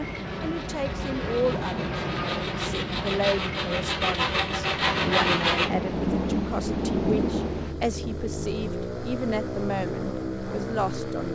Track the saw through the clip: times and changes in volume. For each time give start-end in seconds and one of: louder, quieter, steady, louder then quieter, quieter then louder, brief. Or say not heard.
0.0-5.7 louder.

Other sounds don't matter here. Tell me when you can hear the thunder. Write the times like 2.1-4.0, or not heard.
5.0-7.8.